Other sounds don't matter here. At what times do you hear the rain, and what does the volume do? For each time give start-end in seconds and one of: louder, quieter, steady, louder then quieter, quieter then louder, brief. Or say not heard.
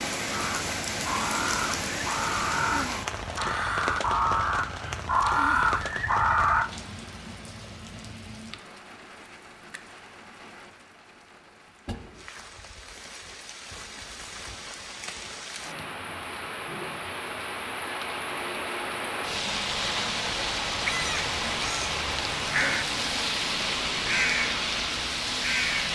0.0-25.9 quieter then louder.